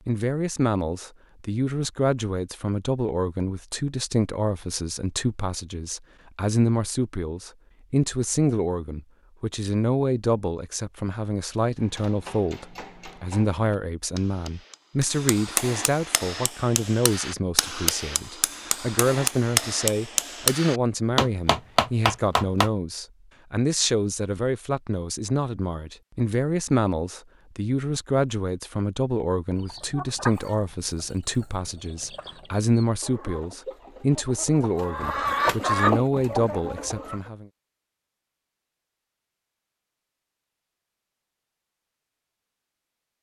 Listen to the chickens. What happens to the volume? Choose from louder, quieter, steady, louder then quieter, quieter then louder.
quieter then louder.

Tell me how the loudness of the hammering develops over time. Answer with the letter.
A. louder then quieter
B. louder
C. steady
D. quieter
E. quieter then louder
B.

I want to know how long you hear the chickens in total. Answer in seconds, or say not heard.
8 s.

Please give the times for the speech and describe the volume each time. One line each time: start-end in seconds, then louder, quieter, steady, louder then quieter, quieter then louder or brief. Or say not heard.
0.1-37.5 steady.